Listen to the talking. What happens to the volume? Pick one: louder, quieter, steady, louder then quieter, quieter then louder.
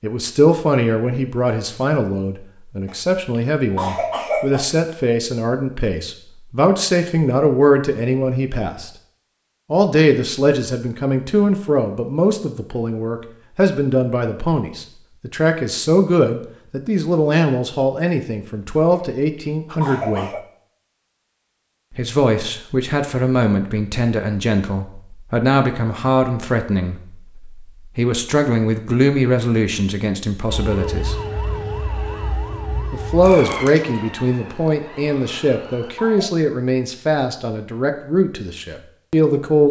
steady.